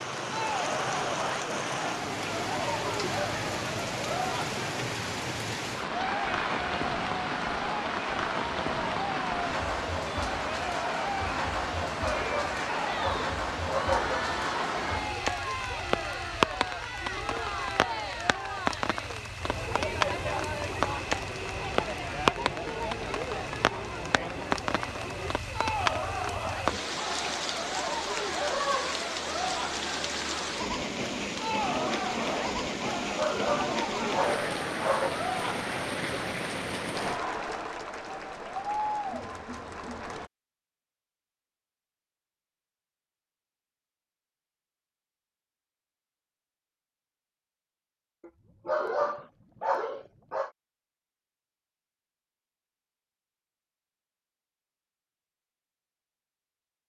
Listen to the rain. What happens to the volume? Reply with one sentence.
The volume of the rain stays about the same.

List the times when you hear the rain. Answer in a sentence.
You can hear the rain from 0.0 to 37.2 s.